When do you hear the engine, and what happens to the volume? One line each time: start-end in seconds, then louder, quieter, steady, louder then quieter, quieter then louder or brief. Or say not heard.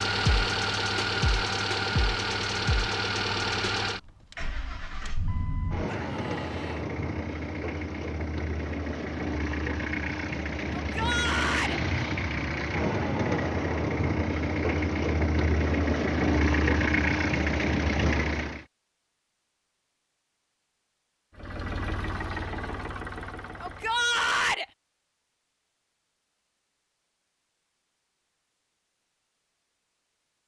0.0-18.6 quieter then louder
21.4-24.3 brief.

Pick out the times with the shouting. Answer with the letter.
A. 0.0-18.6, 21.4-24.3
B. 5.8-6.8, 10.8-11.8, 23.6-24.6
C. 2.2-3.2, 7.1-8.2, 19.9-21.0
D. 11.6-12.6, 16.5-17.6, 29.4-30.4
B.